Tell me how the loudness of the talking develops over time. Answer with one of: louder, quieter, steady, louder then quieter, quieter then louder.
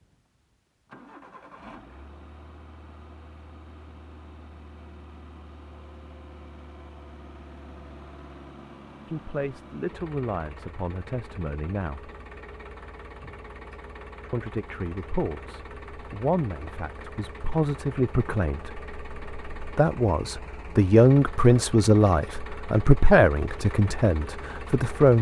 louder.